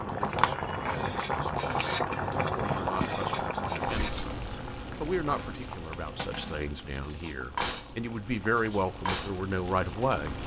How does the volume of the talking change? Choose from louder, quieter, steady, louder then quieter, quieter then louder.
louder.